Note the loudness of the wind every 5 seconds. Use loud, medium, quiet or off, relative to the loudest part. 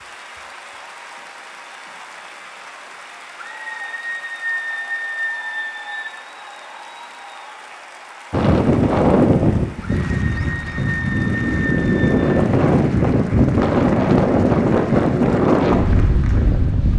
off, loud, loud, loud.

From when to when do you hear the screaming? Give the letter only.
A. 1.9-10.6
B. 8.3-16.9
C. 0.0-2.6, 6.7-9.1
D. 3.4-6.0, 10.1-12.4
D.